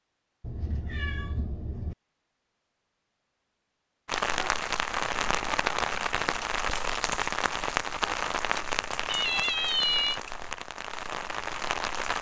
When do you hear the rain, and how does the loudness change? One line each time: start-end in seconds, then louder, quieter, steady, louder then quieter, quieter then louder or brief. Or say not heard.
4.0-12.1 quieter.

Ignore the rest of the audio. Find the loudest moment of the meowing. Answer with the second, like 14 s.
10 s.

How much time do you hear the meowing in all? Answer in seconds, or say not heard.
3 s.